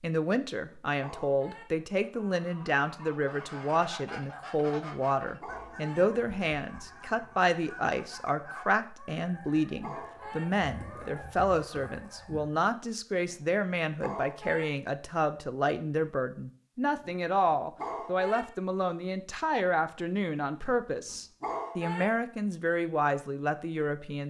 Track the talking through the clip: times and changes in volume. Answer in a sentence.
You can hear the talking from 0.0 to 24.2 s, at a steady volume.